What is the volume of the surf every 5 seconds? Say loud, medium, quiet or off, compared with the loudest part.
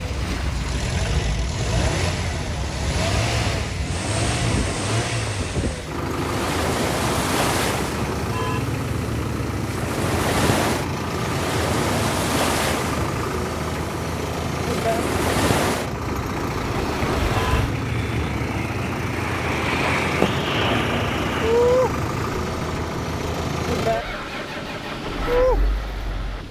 medium, medium, loud, loud, loud, loud.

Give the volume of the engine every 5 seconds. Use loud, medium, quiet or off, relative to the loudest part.
loud, loud, loud, loud, loud, medium.